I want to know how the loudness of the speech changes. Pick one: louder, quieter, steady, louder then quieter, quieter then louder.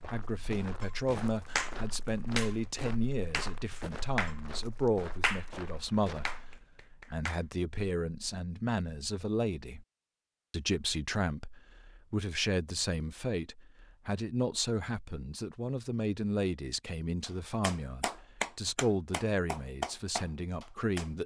steady.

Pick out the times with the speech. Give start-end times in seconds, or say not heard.
0.0-9.8, 10.5-21.2.